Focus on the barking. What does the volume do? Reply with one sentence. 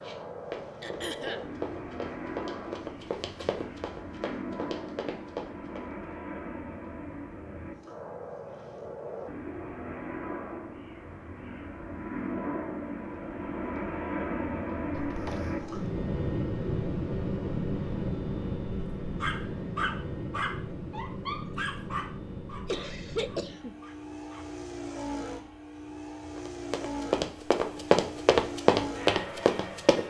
The volume of the barking goes down.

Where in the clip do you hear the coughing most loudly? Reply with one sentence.
The volume of the coughing peaks at 23 seconds.